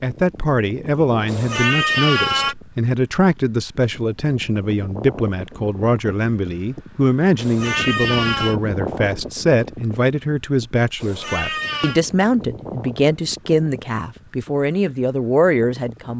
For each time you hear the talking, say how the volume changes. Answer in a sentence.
The talking can be heard from 0.0 to 16.1 s, at a steady volume.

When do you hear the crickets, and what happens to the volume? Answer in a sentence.
The crickets can't be heard in this clip.